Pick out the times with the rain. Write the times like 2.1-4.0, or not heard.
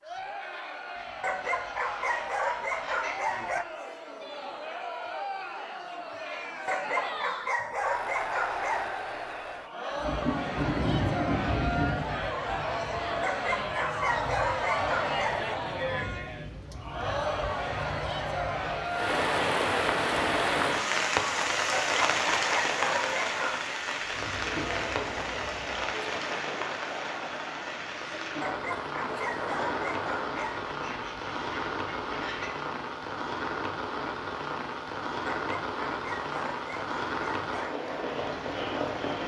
9.9-39.2.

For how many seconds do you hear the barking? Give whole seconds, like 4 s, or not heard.
14 s.